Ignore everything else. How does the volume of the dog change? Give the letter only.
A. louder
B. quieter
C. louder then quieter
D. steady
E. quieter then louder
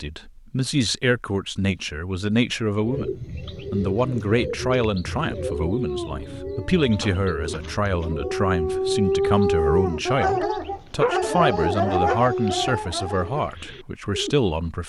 A.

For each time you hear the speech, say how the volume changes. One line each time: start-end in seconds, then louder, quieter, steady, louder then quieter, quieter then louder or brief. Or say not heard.
0.0-14.8 steady.